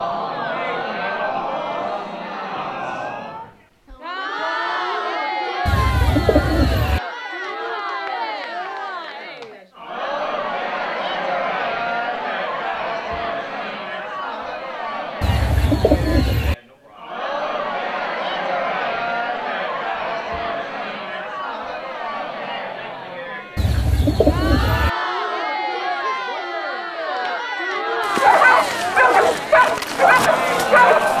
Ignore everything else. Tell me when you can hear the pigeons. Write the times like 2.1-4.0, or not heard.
5.7-7.0, 15.2-16.6, 23.6-24.9.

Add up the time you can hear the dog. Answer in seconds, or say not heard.
3 s.